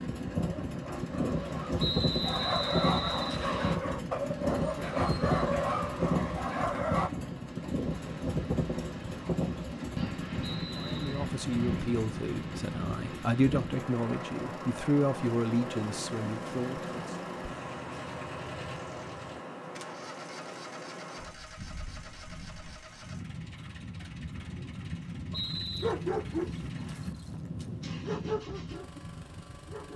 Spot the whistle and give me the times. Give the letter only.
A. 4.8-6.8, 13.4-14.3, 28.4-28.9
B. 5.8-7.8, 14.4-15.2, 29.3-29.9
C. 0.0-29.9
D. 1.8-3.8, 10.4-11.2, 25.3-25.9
D.